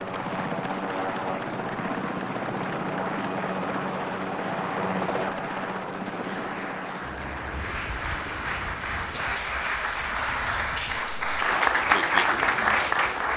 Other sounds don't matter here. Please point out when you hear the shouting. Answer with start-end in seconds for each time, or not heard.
not heard.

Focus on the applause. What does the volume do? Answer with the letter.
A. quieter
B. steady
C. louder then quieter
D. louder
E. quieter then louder
D.